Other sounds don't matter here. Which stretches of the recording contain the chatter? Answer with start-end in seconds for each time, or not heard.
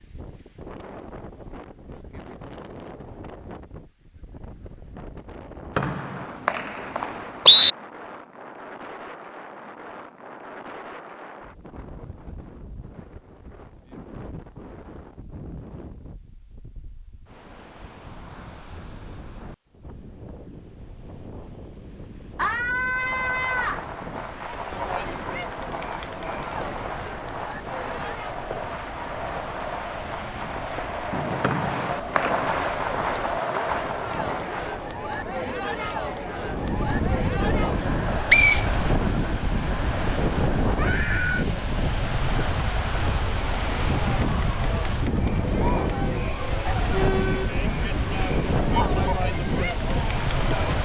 24.5-50.8.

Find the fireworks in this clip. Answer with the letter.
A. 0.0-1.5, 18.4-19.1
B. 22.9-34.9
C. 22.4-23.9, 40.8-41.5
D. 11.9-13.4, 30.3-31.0
B.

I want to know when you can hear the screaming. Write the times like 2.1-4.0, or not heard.
22.4-23.9, 40.8-41.5.